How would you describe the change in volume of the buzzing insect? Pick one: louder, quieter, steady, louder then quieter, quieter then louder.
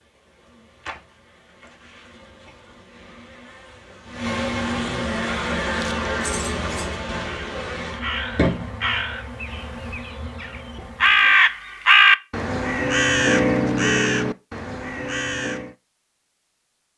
louder then quieter.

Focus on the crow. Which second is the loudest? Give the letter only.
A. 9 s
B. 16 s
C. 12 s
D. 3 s
C.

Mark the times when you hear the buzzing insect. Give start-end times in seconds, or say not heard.
0.0-11.5.